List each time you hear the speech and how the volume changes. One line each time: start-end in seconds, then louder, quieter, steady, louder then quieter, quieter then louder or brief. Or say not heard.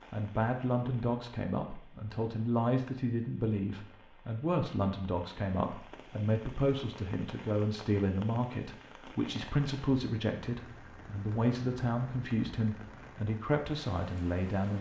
0.1-14.7 steady.